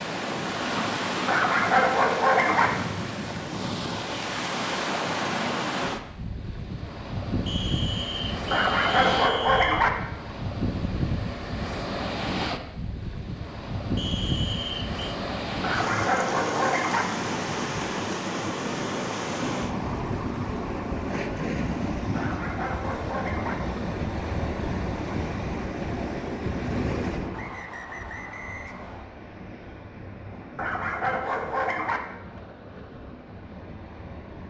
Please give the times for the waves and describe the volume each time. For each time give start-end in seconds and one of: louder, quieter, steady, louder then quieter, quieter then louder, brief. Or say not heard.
0.0-34.4 quieter.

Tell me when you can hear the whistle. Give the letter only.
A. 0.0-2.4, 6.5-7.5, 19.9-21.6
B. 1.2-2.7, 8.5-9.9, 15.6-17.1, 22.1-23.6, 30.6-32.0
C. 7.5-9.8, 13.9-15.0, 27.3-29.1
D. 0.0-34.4
C.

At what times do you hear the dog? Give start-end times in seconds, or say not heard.
1.2-2.7, 8.5-9.9, 15.6-17.1, 22.1-23.6, 30.6-32.0.